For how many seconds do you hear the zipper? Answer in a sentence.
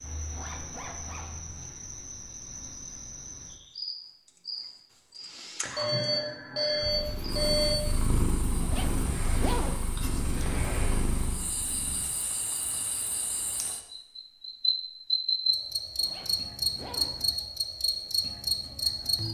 The zipper can be heard for 4 seconds in total.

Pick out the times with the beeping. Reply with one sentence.
You can hear the beeping from 5.8 to 7.8 s.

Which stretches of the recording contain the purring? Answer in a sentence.
You can hear the purring from 6.8 to 12.2 s.